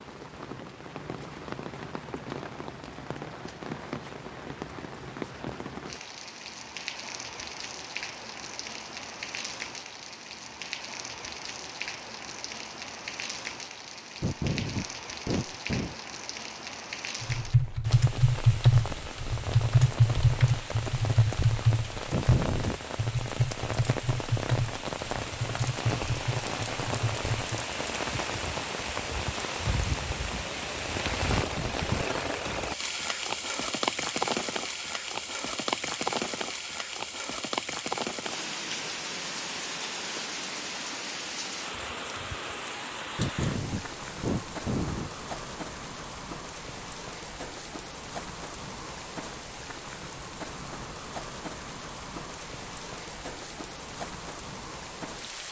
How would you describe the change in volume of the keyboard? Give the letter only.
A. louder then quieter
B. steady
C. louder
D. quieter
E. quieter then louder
D.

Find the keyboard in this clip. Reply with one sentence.
You can hear the keyboard from 17.2 to 27.6 s.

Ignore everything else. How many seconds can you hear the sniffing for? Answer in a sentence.
The sniffing can be heard for 4 seconds in total.